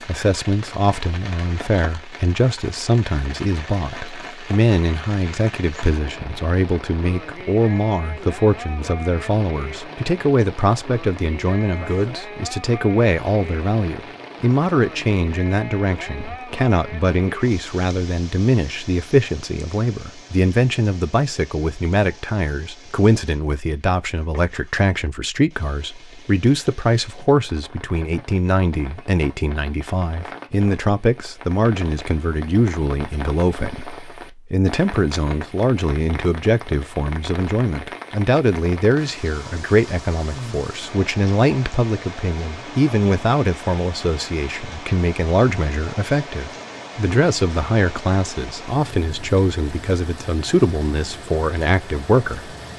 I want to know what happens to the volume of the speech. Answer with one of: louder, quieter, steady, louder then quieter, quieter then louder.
steady.